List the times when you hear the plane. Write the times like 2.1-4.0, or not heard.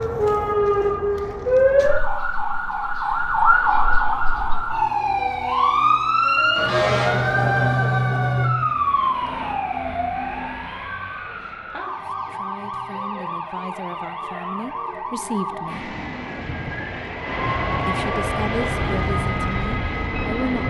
15.7-20.6.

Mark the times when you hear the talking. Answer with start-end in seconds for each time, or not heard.
12.1-15.9, 17.9-20.6.